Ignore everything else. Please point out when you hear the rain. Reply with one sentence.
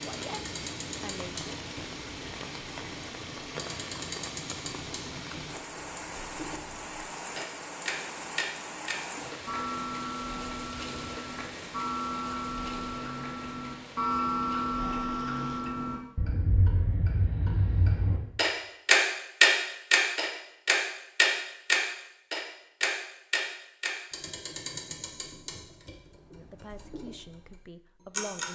You can hear the rain from 0.0 to 15.7 s.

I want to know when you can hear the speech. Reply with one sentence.
The speech can be heard from 0.0 to 1.5 s and from 26.3 to 28.4 s.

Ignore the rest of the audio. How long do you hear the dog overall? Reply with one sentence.
You can't hear the dog here.